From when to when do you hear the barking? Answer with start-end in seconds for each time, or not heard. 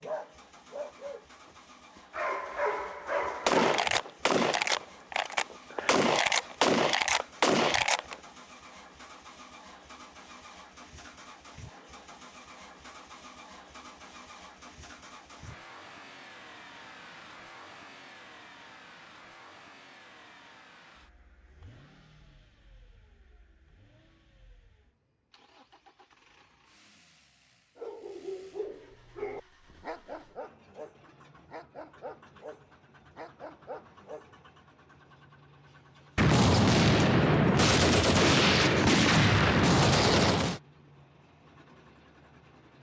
0.0-3.9, 27.8-34.4.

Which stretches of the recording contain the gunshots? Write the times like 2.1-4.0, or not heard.
3.5-8.2, 36.1-40.6.